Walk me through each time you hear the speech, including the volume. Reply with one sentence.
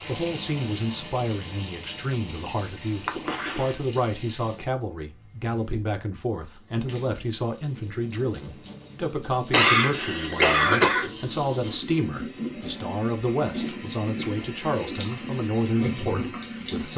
The speech can be heard from 0.1 to 16.9 s, at a steady volume.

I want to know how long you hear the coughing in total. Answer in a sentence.
You can hear the coughing for 2 seconds altogether.